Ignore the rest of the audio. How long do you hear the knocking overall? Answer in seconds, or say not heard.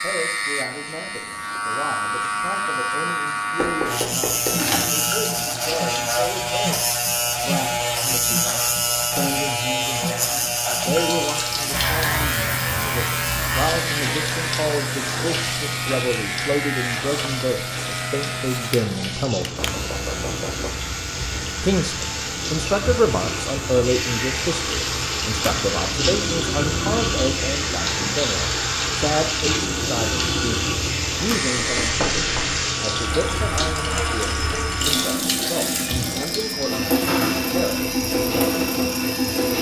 3 s.